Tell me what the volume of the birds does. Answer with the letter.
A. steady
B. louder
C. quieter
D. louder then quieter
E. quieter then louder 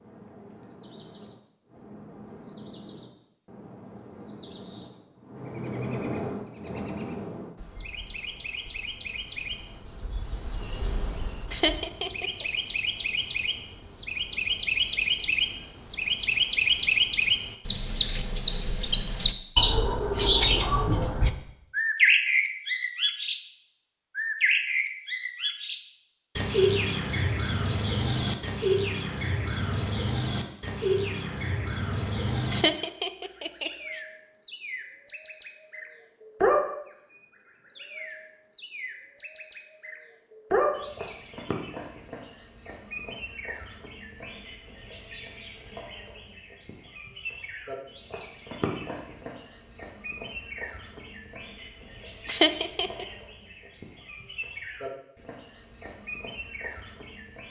D.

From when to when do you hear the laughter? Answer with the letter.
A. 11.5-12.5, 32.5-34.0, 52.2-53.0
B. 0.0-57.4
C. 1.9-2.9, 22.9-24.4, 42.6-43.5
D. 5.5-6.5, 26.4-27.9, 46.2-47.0
A.